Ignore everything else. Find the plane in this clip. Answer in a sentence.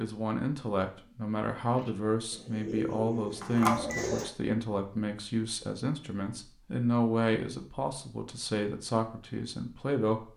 The plane can't be heard in this clip.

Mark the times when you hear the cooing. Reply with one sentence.
The cooing can be heard from 1.6 to 4.3 s.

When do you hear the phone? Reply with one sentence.
You can hear the phone from 3.4 to 4.0 s.